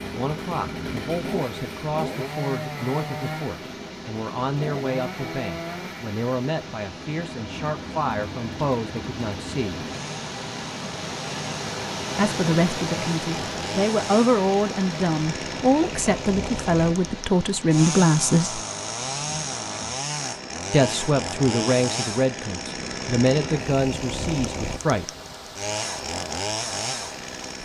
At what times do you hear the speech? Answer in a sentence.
The speech can be heard from 0.0 to 9.8 s, from 12.2 to 18.6 s and from 20.7 to 25.1 s.